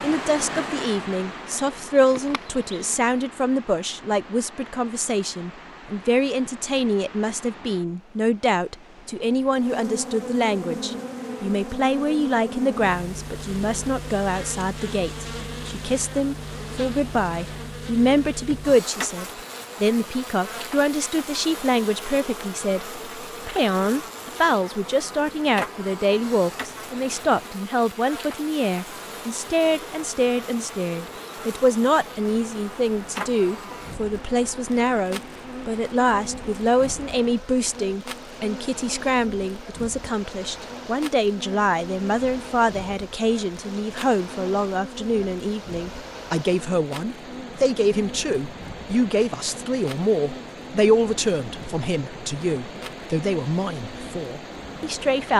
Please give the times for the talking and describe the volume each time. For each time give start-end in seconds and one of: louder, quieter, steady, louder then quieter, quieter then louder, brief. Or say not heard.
0.0-55.3 steady.